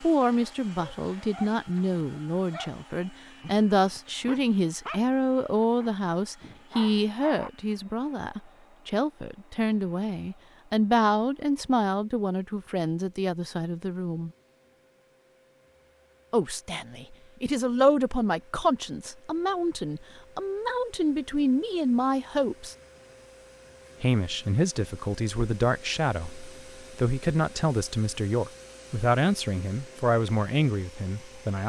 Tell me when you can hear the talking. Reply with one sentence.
The talking can be heard from 0.0 to 14.3 s, from 16.3 to 22.8 s and from 24.0 to 31.6 s.